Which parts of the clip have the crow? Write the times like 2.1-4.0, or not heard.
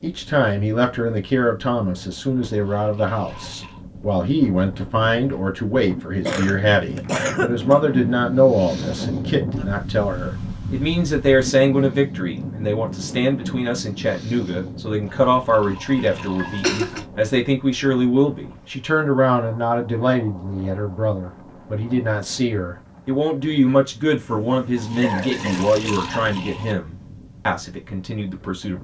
not heard.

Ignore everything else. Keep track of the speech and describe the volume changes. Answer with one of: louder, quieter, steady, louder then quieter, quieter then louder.
steady.